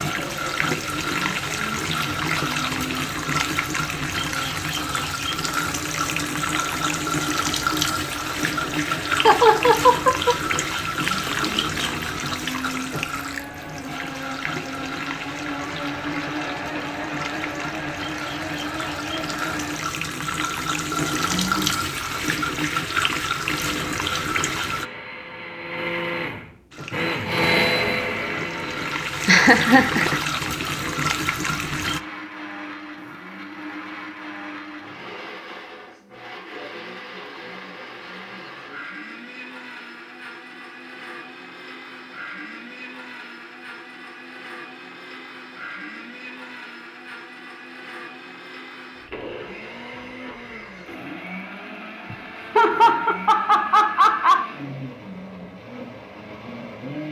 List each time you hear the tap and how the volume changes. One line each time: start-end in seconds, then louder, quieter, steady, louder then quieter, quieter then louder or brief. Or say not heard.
0.0-24.9 quieter then louder
26.7-32.0 louder.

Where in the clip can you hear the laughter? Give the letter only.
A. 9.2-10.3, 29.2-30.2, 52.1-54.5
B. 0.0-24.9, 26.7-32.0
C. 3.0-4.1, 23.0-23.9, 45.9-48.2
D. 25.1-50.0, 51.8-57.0
A.